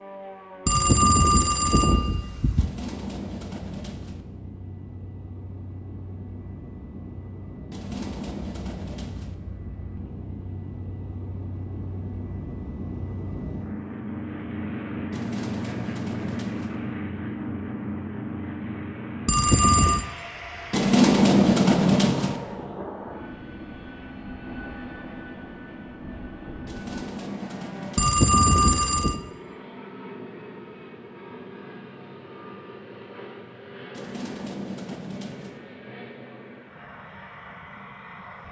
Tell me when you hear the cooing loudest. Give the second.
21 s.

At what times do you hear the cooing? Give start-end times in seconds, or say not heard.
2.5-4.2, 7.7-9.3, 15.1-16.8, 20.7-22.4, 26.6-28.1, 33.9-35.6.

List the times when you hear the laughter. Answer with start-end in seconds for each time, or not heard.
not heard.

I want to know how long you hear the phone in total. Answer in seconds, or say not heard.
4 s.